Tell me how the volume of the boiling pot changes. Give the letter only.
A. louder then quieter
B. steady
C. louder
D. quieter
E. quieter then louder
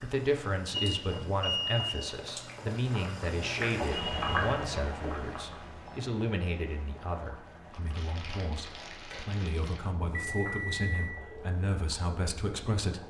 A.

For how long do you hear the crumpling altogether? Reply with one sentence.
The crumpling can be heard for 2 seconds in total.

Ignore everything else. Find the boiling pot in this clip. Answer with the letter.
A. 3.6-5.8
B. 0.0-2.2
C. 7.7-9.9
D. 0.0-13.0
D.